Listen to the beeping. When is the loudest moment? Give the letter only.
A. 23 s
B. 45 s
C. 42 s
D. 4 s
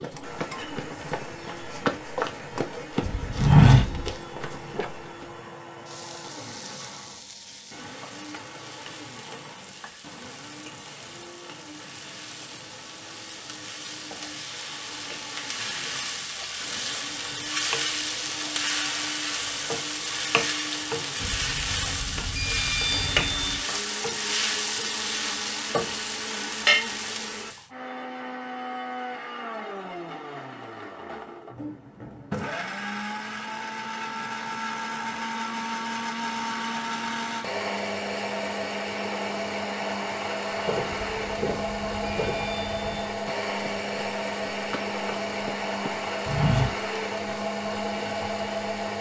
A.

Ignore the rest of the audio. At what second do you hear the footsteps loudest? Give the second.
4 s.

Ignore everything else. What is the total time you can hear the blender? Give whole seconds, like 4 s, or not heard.
49 s.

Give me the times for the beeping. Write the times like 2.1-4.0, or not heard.
3.0-4.2, 21.2-23.6, 40.9-43.1.